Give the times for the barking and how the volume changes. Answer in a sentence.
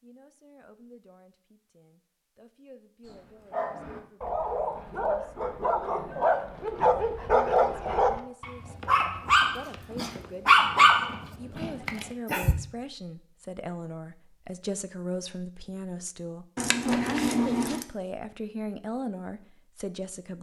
You can hear the barking from 3.0 to 12.6 s, getting louder.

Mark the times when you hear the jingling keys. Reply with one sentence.
The jingling keys can be heard from 16.6 to 17.9 s.